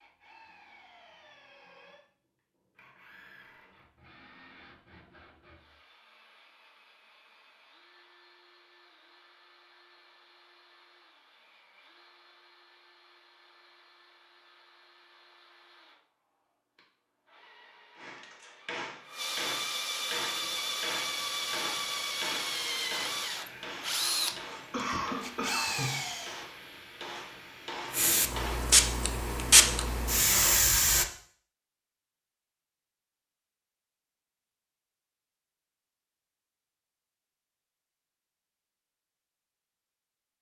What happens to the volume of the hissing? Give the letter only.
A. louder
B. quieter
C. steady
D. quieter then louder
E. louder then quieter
A.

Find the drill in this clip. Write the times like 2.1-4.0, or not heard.
0.0-26.4.